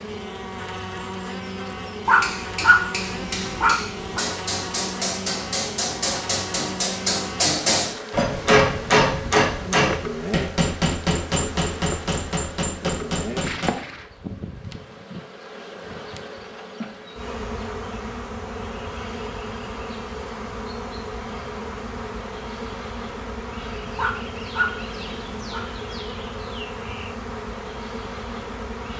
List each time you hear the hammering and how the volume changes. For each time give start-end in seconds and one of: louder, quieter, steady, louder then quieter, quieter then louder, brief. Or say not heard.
2.2-13.7 louder then quieter.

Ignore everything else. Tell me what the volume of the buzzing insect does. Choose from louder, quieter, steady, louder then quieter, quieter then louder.
steady.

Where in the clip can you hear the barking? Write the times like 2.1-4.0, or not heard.
2.0-4.2, 23.9-25.6.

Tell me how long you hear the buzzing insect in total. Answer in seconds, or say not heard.
29 s.